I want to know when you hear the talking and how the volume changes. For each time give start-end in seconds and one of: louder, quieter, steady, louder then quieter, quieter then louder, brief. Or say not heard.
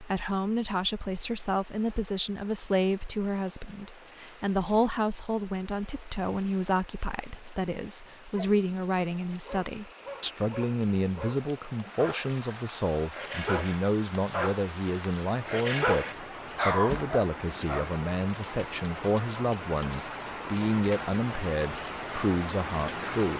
0.0-23.3 steady.